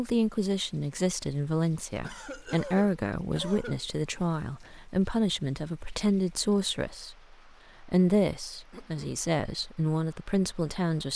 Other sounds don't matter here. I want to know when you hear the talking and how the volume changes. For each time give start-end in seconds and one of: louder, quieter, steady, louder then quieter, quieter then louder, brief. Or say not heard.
0.0-11.1 steady.